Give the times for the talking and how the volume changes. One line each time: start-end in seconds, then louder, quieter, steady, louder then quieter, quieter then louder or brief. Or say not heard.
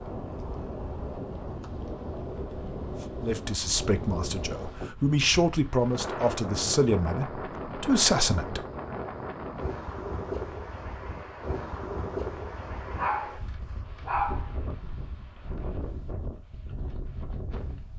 3.2-8.7 louder.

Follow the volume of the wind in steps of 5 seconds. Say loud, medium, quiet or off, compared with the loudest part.
loud, loud, loud, medium.